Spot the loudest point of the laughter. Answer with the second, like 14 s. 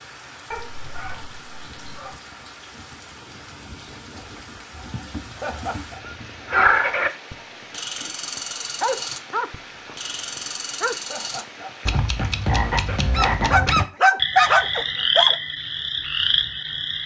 6 s.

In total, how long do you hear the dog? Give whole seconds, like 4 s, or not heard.
8 s.